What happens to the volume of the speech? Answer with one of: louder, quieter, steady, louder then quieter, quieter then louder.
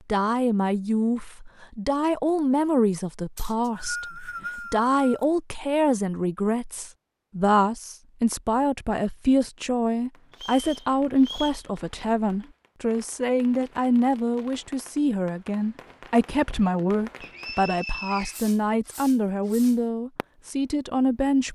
steady.